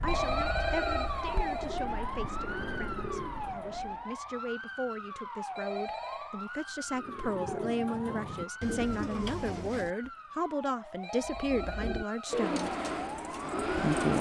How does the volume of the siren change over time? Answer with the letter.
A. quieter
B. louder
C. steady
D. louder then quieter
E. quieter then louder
A.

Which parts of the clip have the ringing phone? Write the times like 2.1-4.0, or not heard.
0.1-1.8, 5.5-6.3, 11.0-12.4.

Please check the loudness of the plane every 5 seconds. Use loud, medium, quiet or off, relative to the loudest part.
quiet, off, loud.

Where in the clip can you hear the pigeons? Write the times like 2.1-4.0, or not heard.
0.0-3.9, 6.9-10.1, 11.2-14.1.